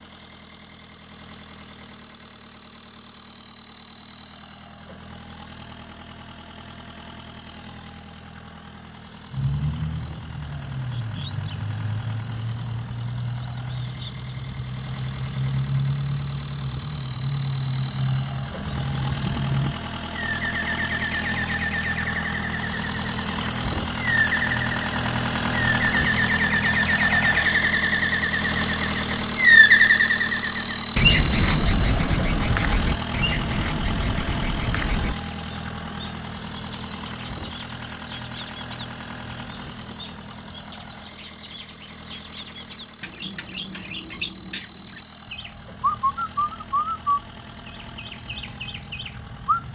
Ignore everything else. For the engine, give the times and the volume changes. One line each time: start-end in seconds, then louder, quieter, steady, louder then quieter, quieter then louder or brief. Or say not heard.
0.0-49.7 louder then quieter.